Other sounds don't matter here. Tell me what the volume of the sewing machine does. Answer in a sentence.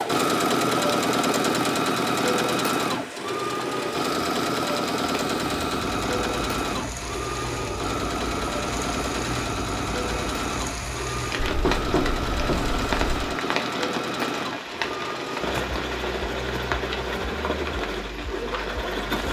The loudness of the sewing machine goes down.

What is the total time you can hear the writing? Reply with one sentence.
The writing can be heard for 2 seconds in total.